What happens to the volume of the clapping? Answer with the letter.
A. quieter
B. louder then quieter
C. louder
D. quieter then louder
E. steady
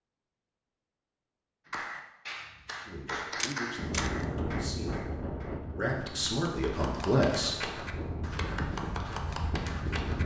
D.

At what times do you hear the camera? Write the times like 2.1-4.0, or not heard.
3.4-4.3.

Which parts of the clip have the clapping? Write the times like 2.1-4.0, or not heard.
1.6-10.2.